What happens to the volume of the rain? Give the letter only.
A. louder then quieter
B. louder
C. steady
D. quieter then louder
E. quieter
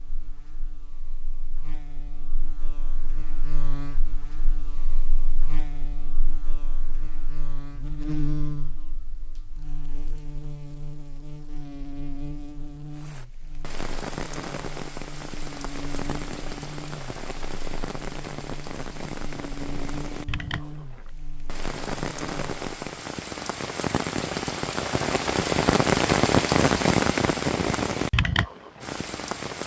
B.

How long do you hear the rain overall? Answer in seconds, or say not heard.
17 s.